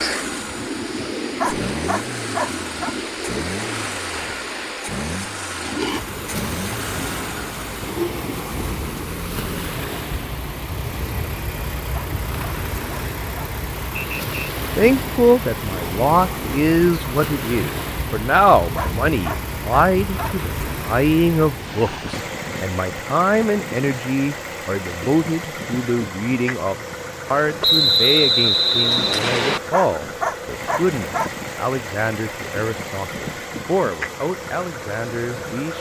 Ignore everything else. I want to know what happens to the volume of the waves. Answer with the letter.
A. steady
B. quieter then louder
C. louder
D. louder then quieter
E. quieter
A.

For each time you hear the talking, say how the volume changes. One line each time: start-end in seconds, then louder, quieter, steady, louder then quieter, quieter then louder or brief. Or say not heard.
14.8-35.7 quieter.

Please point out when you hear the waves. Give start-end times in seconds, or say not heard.
0.0-22.3.